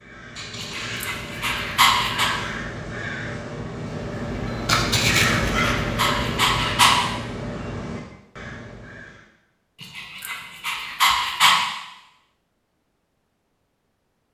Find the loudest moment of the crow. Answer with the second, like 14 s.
5 s.